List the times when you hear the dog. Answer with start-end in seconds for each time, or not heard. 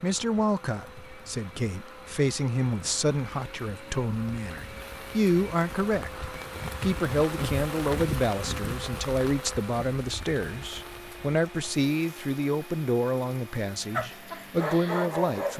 13.9-15.5.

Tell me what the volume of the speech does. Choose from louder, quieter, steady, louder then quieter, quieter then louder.
steady.